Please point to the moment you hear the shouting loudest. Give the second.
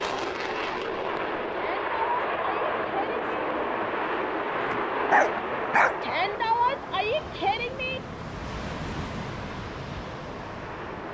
7 s.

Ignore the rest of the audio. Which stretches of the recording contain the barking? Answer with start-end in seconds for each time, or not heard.
4.6-6.2.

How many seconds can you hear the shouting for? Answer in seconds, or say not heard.
4 s.